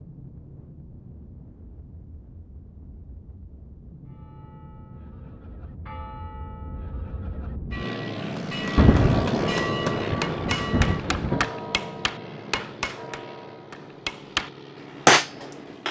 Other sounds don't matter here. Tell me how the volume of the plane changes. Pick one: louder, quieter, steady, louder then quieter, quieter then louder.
louder then quieter.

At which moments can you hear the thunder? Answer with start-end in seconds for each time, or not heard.
8.8-11.5.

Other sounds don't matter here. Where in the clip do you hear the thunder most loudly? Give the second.
9 s.